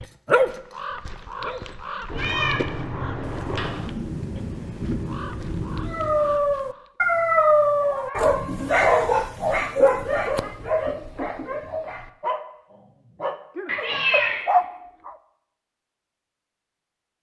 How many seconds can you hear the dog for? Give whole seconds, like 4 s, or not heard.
11 s.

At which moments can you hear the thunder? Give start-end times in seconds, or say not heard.
3.2-6.4.